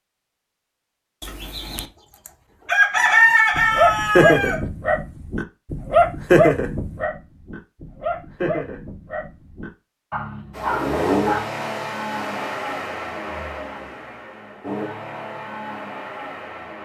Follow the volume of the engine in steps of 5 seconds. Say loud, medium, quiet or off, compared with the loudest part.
off, off, loud, medium.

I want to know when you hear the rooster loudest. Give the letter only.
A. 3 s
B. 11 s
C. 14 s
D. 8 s
A.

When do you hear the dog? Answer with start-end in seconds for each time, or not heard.
3.5-11.4.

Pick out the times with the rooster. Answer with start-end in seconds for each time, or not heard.
1.2-4.6.